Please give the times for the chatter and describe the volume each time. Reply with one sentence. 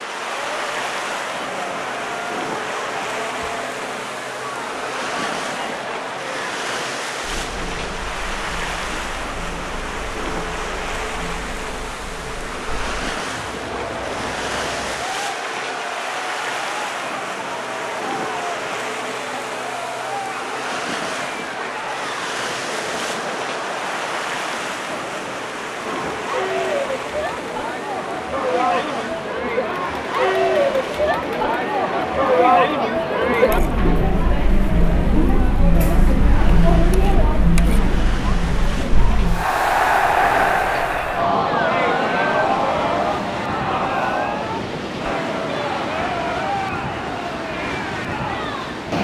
The chatter can be heard from 0.1 to 48.8 s, getting louder.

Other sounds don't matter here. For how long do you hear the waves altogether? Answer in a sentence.
You can hear the waves for 49 seconds altogether.